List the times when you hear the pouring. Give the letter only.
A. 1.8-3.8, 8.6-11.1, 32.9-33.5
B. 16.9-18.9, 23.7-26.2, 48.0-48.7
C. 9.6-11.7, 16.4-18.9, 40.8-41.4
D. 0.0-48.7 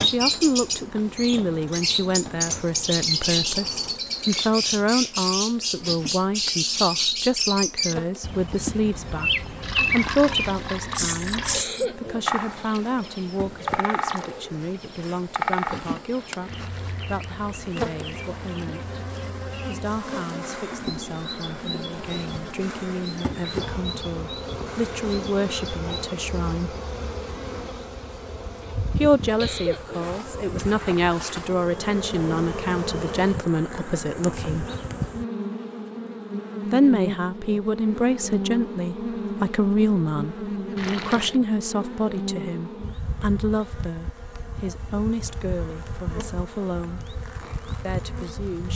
C.